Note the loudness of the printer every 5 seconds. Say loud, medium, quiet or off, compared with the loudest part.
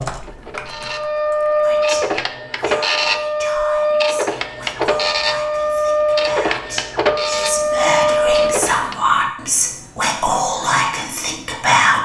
loud, loud, off.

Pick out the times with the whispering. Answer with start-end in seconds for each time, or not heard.
1.6-12.0.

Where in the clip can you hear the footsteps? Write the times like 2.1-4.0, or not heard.
not heard.